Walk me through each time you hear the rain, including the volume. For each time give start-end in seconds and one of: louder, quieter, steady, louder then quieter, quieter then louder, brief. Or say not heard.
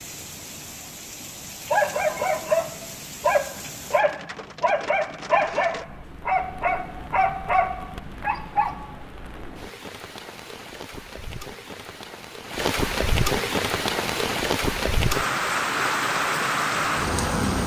0.0-17.6 louder.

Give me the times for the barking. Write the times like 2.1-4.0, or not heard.
1.7-9.0.